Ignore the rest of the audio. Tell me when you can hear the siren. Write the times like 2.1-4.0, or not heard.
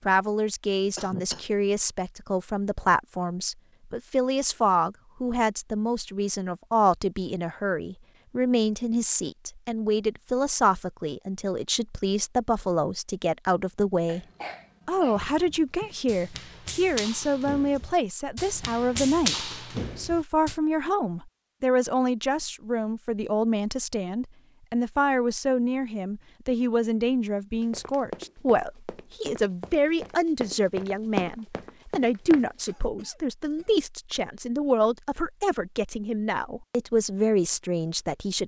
not heard.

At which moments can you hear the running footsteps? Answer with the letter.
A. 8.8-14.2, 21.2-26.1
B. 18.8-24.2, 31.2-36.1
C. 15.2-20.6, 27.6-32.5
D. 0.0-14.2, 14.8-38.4
C.